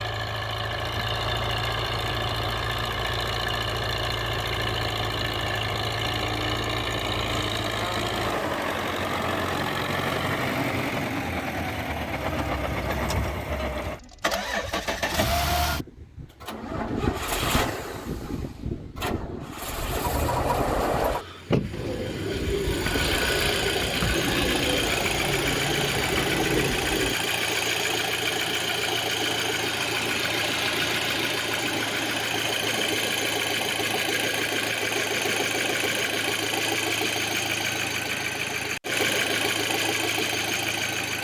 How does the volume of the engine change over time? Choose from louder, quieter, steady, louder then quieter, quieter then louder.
steady.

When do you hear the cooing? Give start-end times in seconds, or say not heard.
21.7-27.1.